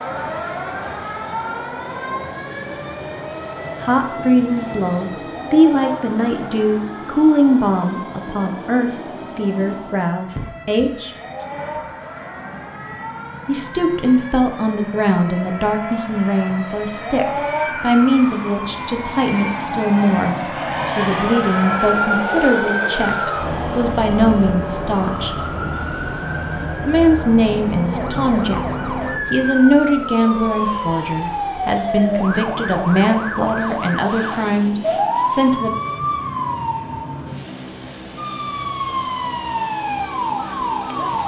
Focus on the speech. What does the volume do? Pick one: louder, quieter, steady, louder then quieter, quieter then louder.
steady.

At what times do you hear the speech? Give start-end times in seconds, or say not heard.
3.8-11.1, 13.4-25.4, 26.8-35.7.